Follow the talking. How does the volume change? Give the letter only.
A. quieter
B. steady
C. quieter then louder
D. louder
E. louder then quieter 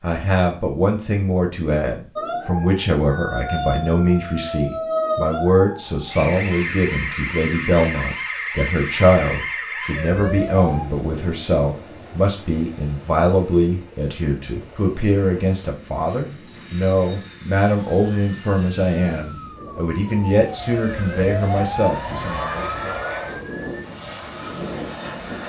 B.